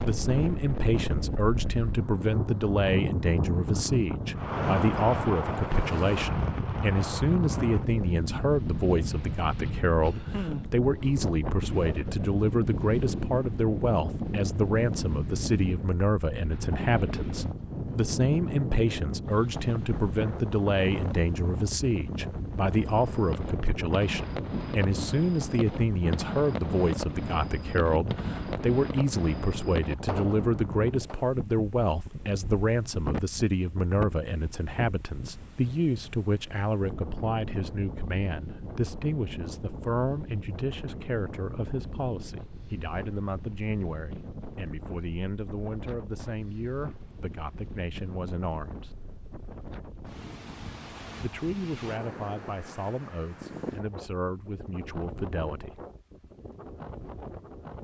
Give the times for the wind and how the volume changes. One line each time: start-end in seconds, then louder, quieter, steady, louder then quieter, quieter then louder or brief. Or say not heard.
0.0-57.8 quieter.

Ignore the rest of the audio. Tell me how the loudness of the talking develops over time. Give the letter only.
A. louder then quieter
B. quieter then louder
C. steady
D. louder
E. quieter
E.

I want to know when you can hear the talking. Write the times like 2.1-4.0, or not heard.
0.0-49.0, 51.2-55.8.